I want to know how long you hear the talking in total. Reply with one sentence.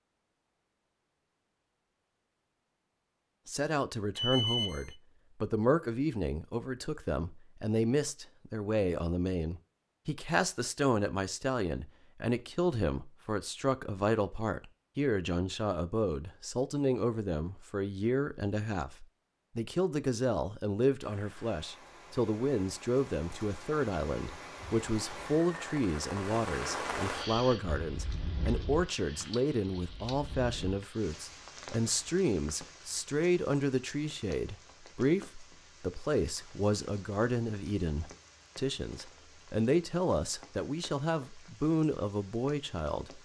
You can hear the talking for 40 seconds altogether.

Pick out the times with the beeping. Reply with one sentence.
You can hear the beeping from 4.2 to 5.0 s.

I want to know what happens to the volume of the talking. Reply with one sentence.
The volume of the talking stays about the same.